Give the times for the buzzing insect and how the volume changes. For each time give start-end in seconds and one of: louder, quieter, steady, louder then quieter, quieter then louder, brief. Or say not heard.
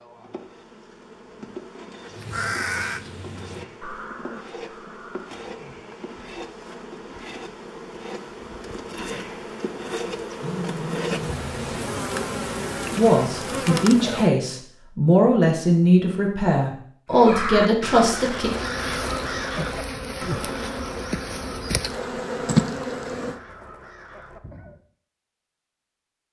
0.0-14.3 louder
18.4-23.4 louder.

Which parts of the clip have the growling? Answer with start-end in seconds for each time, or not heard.
10.2-11.4.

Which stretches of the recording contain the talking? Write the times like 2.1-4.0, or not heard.
12.9-18.5.